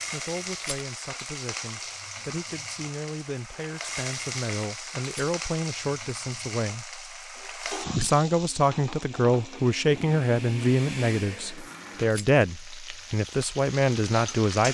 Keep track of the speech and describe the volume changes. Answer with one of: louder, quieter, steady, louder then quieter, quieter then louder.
louder.